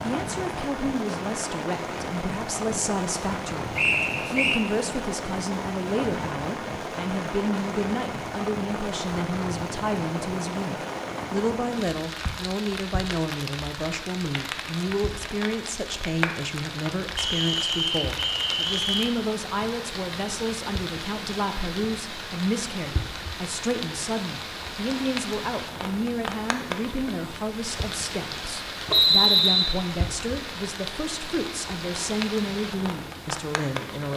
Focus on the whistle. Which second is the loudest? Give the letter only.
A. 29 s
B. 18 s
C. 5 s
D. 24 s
A.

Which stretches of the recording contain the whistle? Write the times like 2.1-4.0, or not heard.
3.8-4.6, 17.1-19.1, 28.9-29.8.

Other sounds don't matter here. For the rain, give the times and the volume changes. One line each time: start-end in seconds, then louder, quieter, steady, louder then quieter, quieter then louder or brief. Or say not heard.
0.0-34.1 steady.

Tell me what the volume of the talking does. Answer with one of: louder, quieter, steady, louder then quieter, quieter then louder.
steady.